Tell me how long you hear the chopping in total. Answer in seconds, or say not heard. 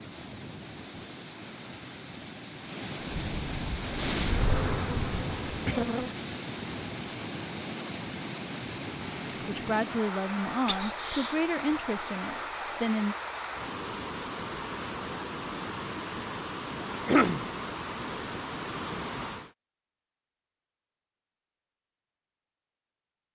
not heard.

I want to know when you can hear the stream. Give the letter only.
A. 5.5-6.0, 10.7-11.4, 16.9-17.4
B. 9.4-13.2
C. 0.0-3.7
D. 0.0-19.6
D.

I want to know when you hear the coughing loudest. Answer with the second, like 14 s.
17 s.